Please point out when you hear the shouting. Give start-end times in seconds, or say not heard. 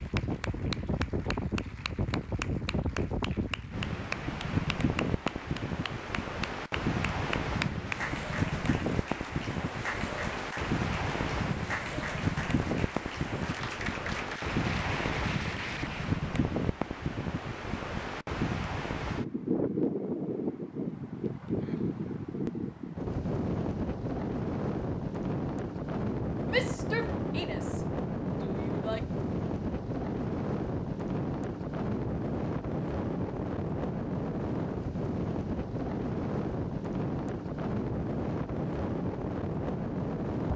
26.4-29.1.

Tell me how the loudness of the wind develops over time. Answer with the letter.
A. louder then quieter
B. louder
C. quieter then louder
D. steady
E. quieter
D.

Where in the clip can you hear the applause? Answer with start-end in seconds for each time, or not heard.
0.0-16.2.